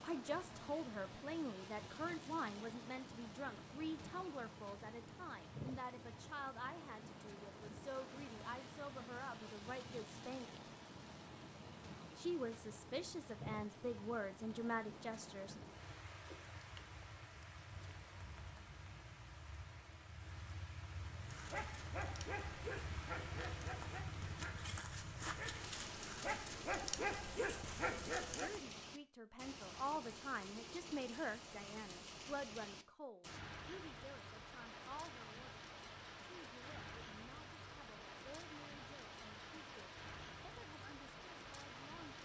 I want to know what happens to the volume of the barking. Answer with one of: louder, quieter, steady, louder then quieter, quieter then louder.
louder.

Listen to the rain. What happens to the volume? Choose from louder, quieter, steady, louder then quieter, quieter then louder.
steady.